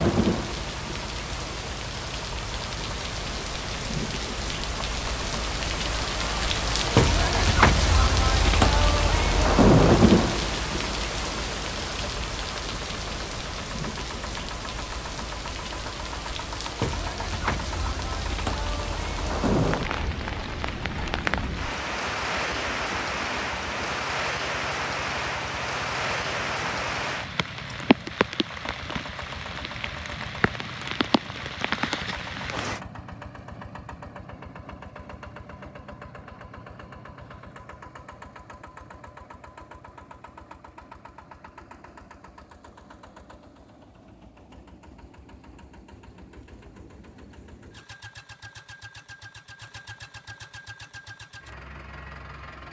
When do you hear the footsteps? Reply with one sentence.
The footsteps can't be heard in this clip.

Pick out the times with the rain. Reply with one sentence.
You can hear the rain from 0.0 to 32.8 s.